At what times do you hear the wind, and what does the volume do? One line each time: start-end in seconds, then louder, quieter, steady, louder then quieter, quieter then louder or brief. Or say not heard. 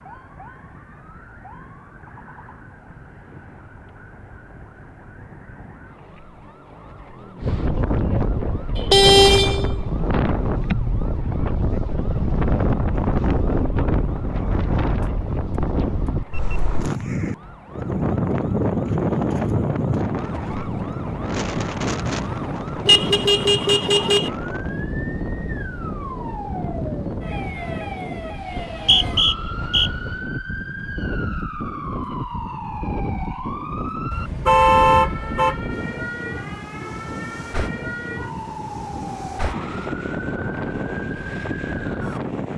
7.4-42.5 quieter.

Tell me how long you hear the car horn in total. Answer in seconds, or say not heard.
4 s.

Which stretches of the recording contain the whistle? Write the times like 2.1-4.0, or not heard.
28.4-29.9.